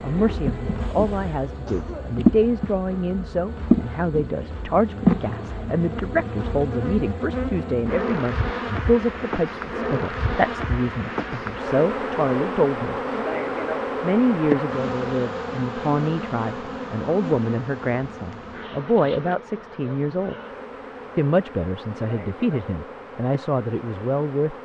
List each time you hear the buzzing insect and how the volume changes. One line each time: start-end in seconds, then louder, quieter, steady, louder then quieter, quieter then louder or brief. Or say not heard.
0.0-24.5 quieter.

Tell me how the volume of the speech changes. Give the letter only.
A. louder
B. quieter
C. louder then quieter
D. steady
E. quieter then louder
D.